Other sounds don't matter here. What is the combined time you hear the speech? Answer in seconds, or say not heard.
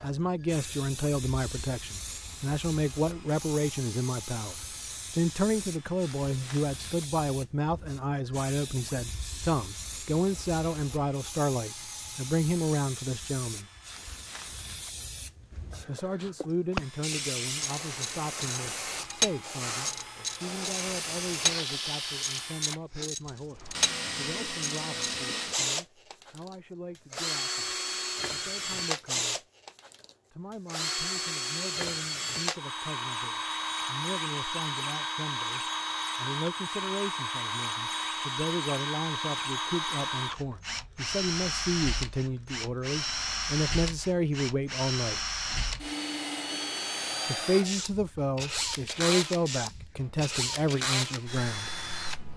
47 s.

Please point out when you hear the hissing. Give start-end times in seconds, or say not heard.
0.1-22.6.